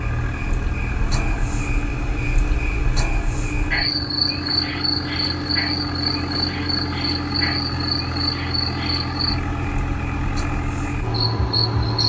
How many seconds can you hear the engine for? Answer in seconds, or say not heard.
12 s.